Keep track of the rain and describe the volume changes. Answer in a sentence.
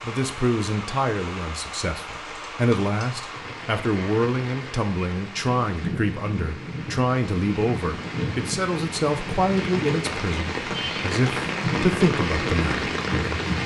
The volume of the rain goes up.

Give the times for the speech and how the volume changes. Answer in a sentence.
The speech can be heard from 0.0 to 12.8 s, at a steady volume.